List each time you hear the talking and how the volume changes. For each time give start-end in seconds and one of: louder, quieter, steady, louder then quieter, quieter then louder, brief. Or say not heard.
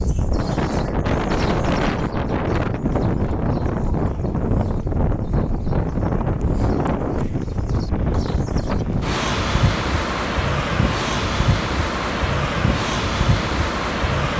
not heard.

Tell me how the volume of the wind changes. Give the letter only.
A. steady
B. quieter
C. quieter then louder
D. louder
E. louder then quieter
A.